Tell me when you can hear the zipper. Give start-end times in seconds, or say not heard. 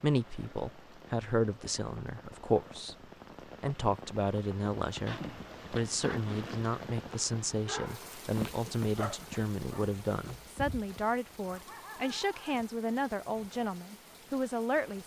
5.0-6.8.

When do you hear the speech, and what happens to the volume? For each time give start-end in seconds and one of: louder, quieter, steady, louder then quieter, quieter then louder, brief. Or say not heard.
0.0-3.0 brief
3.6-15.0 steady.